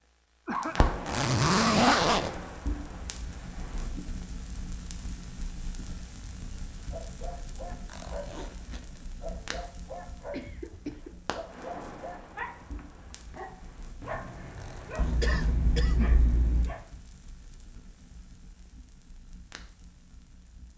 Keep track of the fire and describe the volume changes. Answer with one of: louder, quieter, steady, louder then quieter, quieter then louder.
quieter.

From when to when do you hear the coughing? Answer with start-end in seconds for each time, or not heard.
0.5-0.9, 10.3-11.2, 14.9-16.8.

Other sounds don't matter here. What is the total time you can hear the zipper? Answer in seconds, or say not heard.
3 s.